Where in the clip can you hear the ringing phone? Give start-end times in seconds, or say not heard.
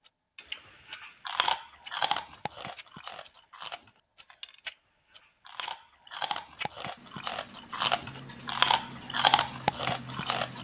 not heard.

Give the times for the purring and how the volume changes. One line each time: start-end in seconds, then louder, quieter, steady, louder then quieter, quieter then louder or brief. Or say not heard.
not heard.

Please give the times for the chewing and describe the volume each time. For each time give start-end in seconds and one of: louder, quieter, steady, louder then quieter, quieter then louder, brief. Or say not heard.
0.3-10.5 quieter then louder.